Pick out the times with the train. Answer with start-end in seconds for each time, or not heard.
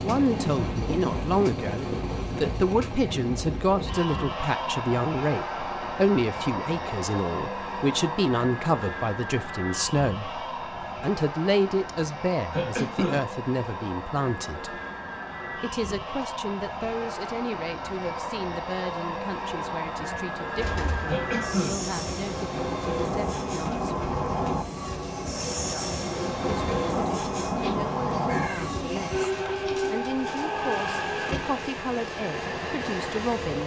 0.0-33.6.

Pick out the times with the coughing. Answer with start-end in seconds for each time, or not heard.
12.5-13.2, 21.1-21.9.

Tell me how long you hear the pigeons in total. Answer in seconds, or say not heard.
10 s.